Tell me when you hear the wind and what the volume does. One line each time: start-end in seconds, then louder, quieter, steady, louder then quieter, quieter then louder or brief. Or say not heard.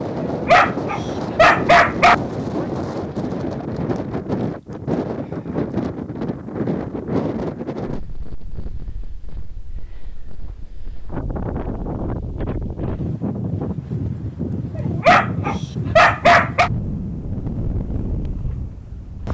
0.0-19.3 quieter then louder.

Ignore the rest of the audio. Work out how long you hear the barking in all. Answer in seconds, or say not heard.
4 s.